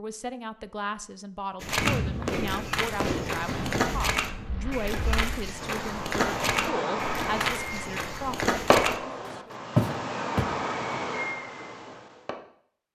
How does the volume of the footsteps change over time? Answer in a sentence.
The volume of the footsteps goes up.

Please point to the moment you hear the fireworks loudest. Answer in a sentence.
The loudest moment of the fireworks is at 9 seconds.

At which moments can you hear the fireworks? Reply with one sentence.
You can hear the fireworks from 1.7 to 12.4 s.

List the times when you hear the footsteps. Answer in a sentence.
The footsteps can be heard from 1.6 to 10.6 s.